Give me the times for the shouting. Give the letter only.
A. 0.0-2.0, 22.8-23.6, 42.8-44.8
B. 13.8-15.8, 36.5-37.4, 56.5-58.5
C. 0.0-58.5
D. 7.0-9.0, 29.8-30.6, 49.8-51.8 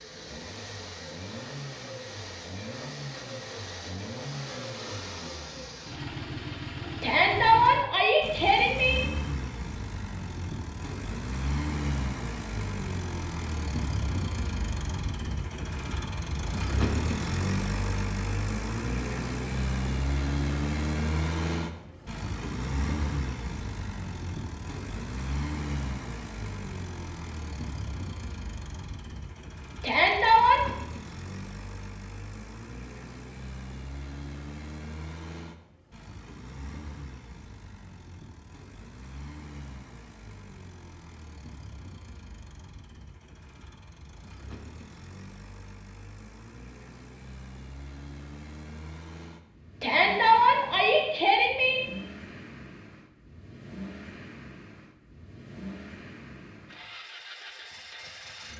D.